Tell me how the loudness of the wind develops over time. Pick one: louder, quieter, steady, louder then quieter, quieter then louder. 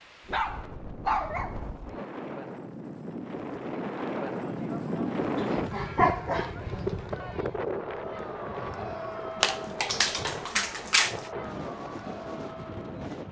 louder then quieter.